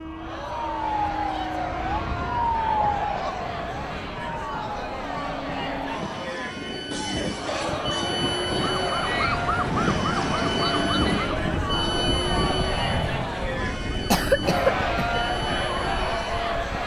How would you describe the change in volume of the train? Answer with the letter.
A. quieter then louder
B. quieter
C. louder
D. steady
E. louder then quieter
E.